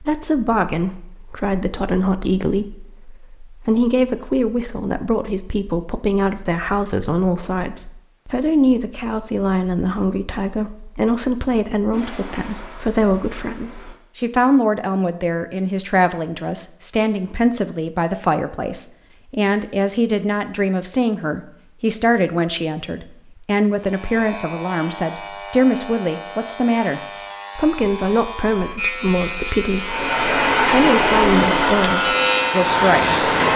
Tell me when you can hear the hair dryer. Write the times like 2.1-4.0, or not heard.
29.8-33.5.